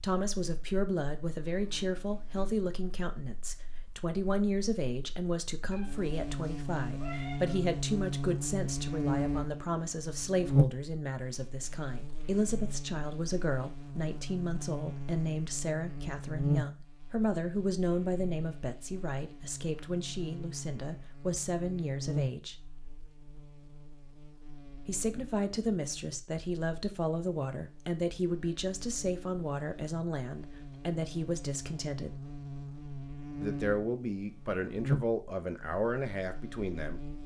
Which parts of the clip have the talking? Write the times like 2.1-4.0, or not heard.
0.0-22.6, 24.9-32.1, 33.4-37.0.